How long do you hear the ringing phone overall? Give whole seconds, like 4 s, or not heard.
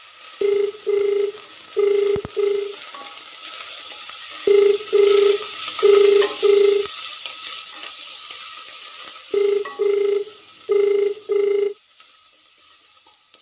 7 s.